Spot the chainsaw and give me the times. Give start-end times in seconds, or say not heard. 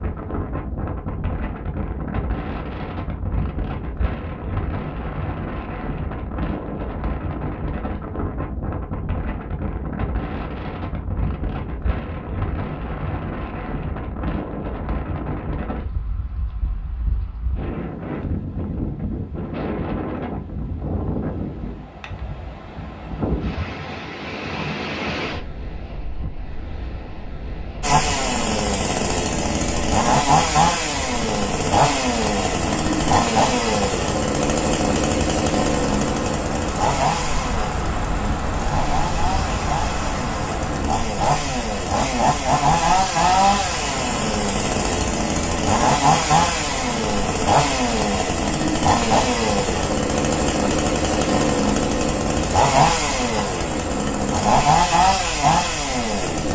27.8-56.4.